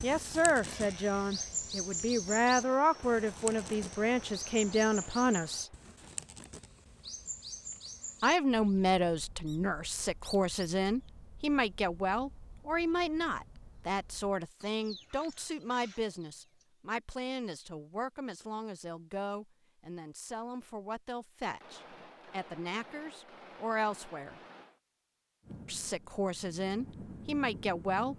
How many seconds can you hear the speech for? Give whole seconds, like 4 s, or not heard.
24 s.